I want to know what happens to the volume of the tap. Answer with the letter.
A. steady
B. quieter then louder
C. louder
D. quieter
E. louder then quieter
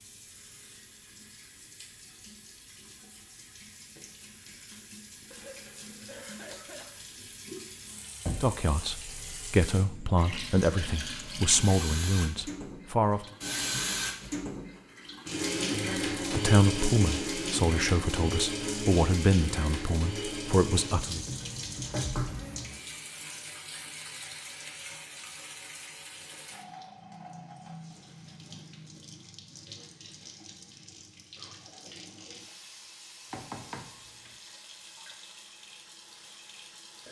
E.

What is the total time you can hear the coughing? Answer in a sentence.
You can hear the coughing for 3 seconds altogether.